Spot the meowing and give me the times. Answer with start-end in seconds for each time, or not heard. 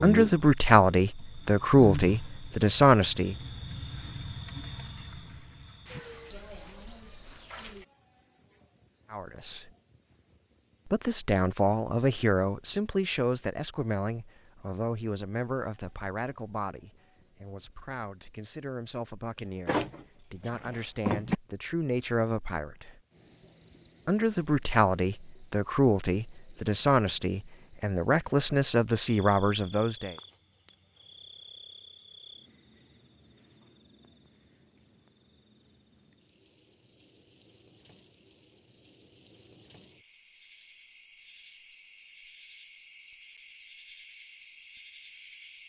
not heard.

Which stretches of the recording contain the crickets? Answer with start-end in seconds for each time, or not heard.
0.0-45.6.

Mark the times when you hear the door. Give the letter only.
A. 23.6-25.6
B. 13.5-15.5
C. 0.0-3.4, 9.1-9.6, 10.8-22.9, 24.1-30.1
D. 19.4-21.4
D.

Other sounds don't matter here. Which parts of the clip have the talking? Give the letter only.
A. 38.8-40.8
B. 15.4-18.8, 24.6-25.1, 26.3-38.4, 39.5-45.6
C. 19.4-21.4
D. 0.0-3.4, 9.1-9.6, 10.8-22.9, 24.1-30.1
D.